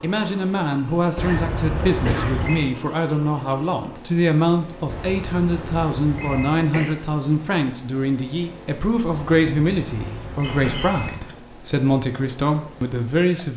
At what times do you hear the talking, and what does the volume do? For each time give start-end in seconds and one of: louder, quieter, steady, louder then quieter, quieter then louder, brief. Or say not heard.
0.0-13.5 steady.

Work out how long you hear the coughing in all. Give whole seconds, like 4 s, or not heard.
3 s.